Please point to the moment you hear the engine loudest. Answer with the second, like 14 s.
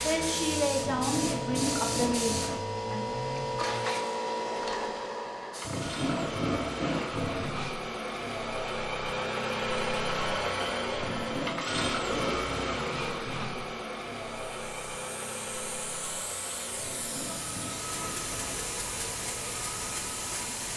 10 s.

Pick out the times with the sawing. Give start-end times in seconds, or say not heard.
0.8-2.6, 5.6-7.8, 10.9-13.7, 16.8-18.6.